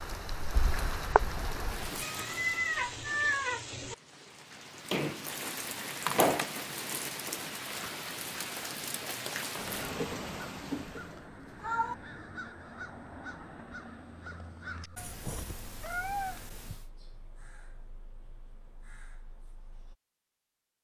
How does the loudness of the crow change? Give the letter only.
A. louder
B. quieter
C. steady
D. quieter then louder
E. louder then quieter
B.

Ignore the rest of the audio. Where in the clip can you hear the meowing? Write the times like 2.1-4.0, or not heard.
2.0-4.0, 11.1-11.9, 14.9-16.9.